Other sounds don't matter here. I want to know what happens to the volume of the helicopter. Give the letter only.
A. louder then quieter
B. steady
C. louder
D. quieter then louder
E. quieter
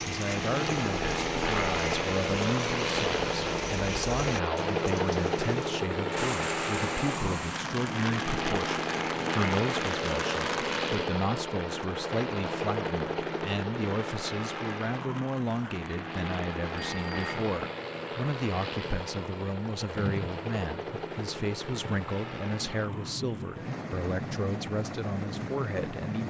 E.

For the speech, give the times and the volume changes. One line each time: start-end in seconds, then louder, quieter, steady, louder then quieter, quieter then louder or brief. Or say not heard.
0.1-26.2 steady.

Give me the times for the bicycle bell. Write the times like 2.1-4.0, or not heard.
16.8-17.4.